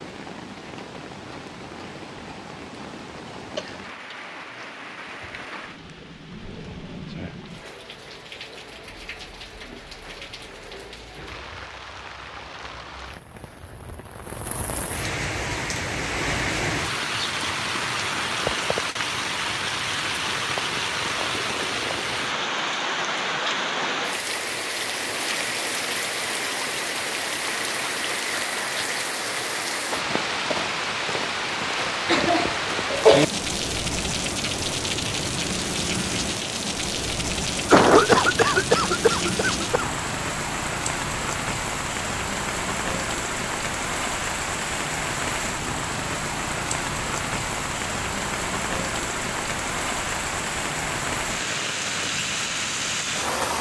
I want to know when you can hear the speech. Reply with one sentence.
The speech can't be heard in this clip.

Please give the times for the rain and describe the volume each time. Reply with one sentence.
You can hear the rain from 0.0 to 53.5 s, getting louder.